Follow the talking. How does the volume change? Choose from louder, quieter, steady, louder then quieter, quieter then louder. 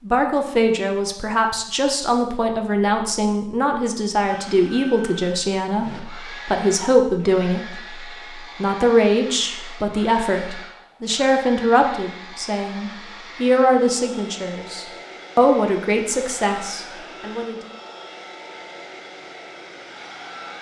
steady.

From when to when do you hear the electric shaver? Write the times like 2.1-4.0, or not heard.
not heard.